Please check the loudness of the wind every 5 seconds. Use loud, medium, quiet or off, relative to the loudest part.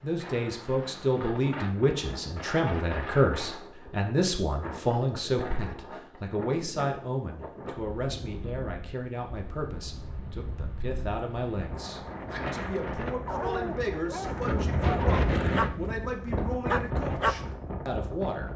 medium, medium, loud, loud.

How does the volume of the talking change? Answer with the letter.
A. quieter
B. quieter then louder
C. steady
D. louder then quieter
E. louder
A.